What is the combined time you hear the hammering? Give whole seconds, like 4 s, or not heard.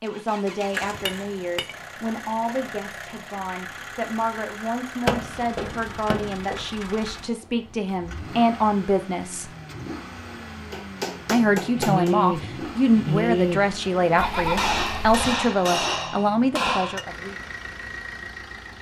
6 s.